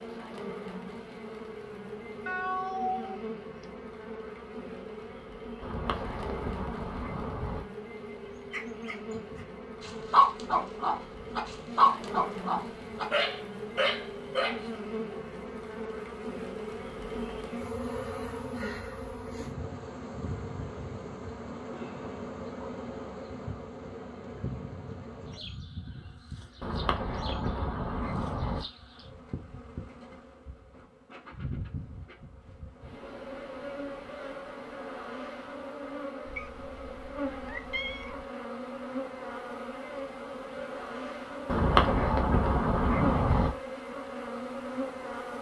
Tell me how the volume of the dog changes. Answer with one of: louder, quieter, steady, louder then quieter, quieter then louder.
louder then quieter.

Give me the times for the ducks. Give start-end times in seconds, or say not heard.
5.6-7.7, 26.6-28.6, 41.5-43.5.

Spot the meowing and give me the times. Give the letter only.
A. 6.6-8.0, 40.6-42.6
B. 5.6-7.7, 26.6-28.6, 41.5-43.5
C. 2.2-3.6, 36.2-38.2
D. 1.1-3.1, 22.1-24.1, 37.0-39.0
C.